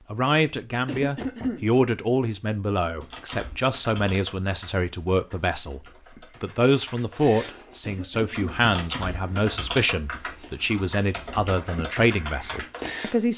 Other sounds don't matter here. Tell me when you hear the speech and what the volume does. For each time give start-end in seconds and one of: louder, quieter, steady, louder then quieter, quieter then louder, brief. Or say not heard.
0.1-13.3 steady.